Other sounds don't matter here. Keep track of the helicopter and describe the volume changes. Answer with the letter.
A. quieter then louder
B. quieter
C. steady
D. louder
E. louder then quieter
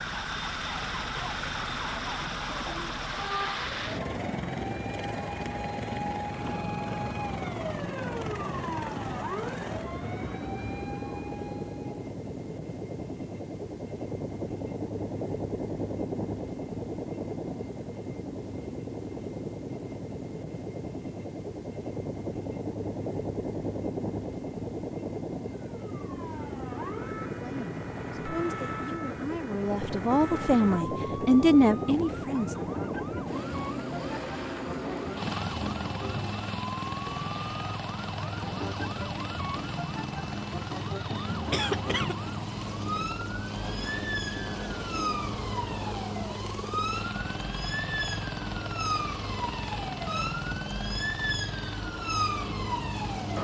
C.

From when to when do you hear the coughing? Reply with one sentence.
You can hear the coughing from 41.5 to 42.1 s.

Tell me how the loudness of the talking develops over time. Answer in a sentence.
The volume of the talking goes up.